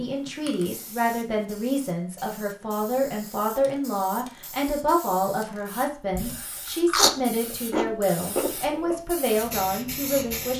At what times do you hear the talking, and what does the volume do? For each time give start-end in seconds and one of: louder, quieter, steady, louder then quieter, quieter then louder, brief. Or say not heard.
0.0-10.5 steady.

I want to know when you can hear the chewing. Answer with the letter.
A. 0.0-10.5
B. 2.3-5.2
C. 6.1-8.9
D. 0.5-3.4
C.